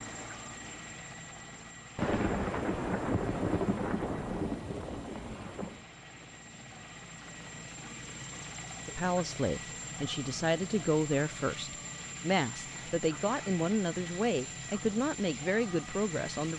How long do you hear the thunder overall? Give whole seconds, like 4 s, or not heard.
4 s.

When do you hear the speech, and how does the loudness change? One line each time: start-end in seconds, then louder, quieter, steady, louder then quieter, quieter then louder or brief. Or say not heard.
8.8-16.5 steady.